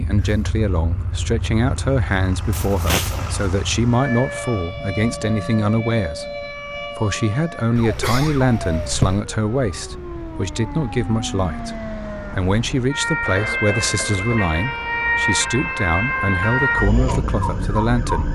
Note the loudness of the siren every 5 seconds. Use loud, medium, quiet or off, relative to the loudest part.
medium, medium, medium, loud.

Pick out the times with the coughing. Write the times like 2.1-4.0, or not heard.
2.5-3.4, 7.8-9.2, 13.2-14.4.